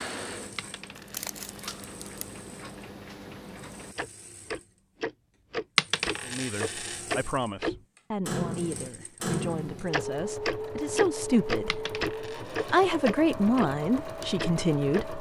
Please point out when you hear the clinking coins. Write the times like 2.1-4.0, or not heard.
0.6-1.8, 5.8-7.0, 11.7-12.9.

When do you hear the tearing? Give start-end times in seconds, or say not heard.
0.9-2.4.